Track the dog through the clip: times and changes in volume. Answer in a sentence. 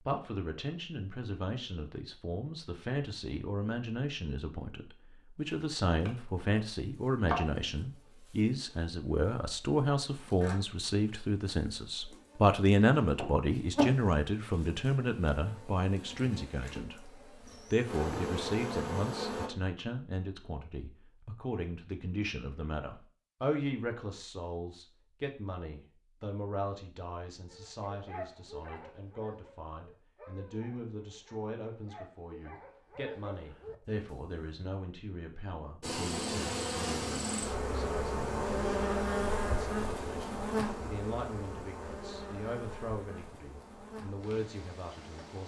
You can hear the dog from 27.5 to 34.5 s, getting quieter then louder.